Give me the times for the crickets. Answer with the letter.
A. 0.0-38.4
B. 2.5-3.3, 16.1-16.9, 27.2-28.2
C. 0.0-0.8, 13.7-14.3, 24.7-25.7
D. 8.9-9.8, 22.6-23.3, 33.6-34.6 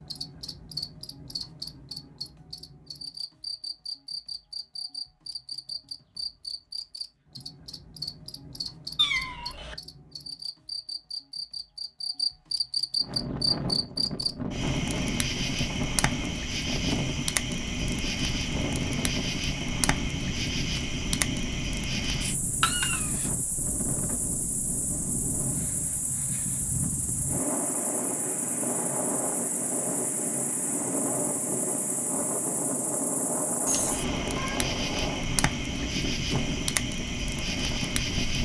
A.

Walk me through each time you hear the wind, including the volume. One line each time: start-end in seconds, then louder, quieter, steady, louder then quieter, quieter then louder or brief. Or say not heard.
13.0-38.4 steady.